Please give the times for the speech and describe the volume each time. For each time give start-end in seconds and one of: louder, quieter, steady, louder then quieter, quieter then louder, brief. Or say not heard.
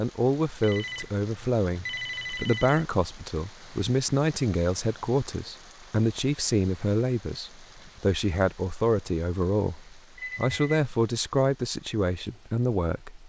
0.0-13.2 steady.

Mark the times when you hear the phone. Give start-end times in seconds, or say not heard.
0.6-2.9, 10.2-10.8.